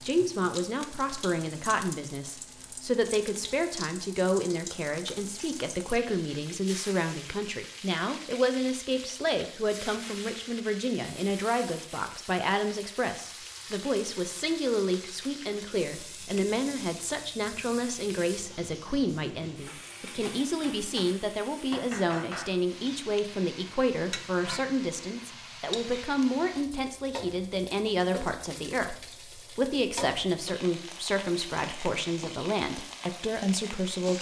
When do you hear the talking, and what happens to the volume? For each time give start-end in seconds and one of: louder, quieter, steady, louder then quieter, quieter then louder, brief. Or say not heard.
0.0-34.1 steady.